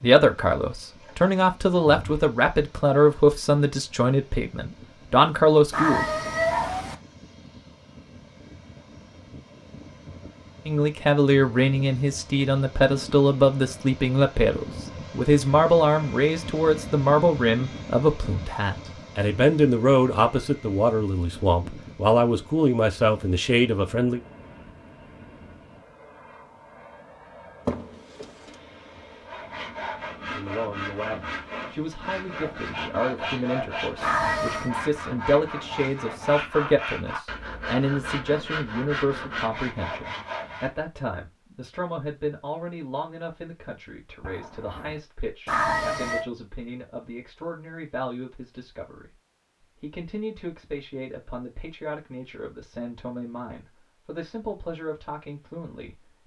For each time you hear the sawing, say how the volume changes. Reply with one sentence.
You can hear the sawing from 29.1 to 40.9 s, at a steady volume.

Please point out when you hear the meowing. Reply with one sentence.
You can hear the meowing from 5.7 to 7.0 s, from 34.0 to 34.7 s and from 45.5 to 46.2 s.